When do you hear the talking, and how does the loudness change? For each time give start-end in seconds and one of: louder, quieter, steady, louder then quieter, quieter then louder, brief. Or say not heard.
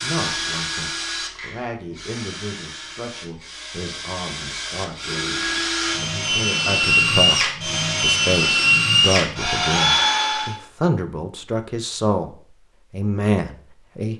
0.0-14.1 louder.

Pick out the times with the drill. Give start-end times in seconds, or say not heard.
0.0-10.6.